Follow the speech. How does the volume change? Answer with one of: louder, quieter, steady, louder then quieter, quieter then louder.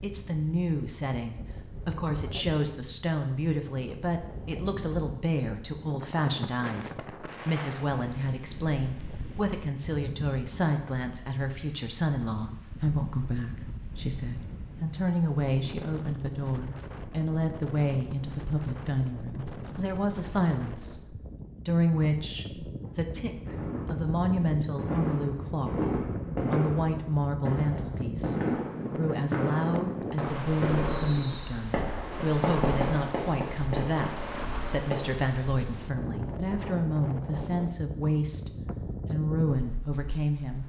steady.